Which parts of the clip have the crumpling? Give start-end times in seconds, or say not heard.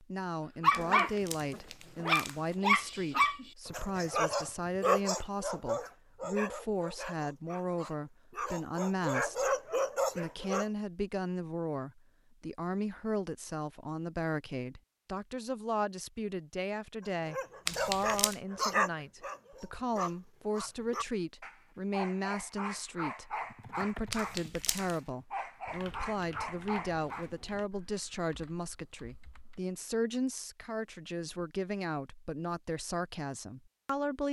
0.7-2.5, 17.6-18.4, 24.1-25.0.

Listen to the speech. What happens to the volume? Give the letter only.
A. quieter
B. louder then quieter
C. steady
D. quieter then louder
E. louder
C.